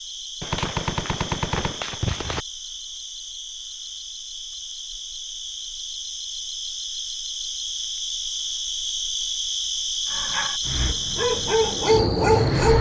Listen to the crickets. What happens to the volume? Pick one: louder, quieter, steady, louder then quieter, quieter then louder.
louder.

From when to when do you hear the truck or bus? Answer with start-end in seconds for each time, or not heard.
10.7-12.7.